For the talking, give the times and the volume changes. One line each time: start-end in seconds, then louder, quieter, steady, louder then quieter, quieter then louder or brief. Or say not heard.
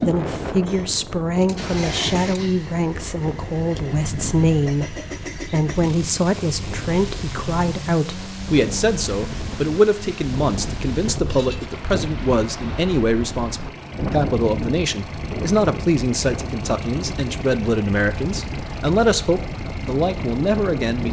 0.0-21.0 steady.